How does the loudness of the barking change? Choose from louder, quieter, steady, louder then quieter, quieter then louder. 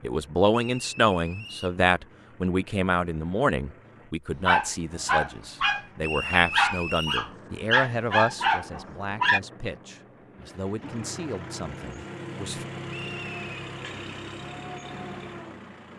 quieter then louder.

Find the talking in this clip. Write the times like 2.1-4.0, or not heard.
0.0-12.7.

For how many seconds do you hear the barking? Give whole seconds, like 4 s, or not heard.
5 s.